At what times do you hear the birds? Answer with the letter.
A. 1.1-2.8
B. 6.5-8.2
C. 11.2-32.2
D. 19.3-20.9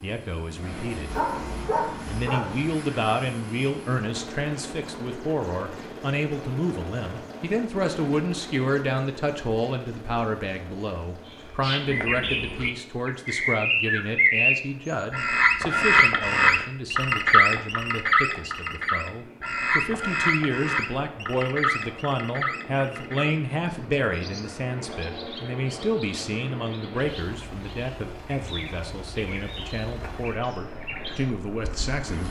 C.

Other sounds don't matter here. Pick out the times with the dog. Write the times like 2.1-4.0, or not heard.
1.1-2.8.